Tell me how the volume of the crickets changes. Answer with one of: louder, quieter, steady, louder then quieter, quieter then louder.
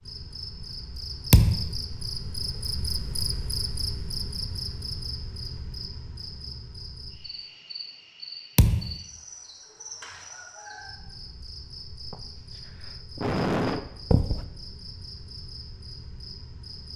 quieter.